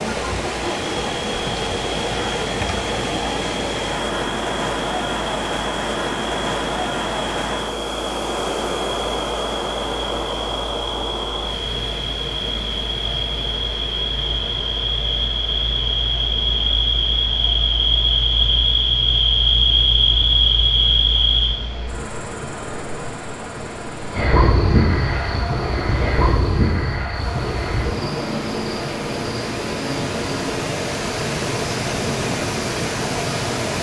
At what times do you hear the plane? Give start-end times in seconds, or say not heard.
not heard.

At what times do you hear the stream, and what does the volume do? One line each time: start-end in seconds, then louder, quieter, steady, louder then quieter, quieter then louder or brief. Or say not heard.
0.0-33.7 quieter then louder.